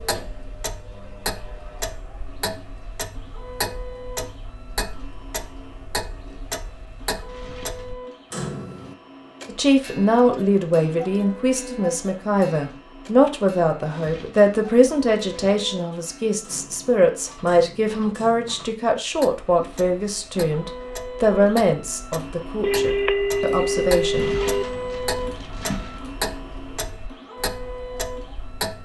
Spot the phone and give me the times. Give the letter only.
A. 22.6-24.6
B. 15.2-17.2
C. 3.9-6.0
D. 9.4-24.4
A.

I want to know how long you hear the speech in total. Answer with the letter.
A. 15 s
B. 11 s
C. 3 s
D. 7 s
A.